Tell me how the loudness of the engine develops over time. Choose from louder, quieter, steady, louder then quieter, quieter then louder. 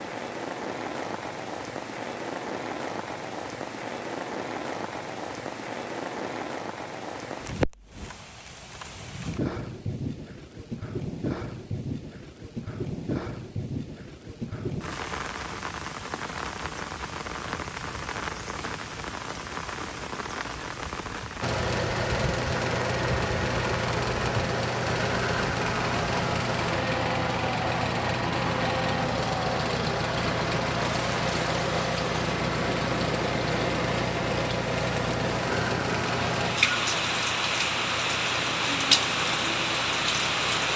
quieter.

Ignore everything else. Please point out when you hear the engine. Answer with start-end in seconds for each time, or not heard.
21.4-40.7.